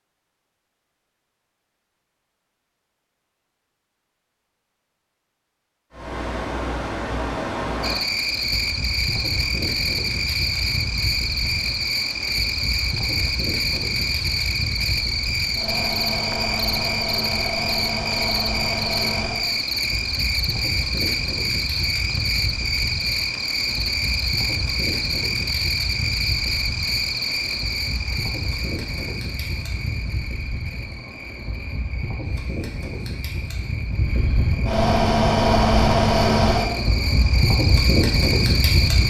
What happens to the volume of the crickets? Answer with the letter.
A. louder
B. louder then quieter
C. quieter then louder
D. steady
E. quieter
E.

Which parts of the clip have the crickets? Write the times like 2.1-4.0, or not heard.
7.8-39.0.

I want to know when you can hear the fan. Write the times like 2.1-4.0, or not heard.
5.9-39.0.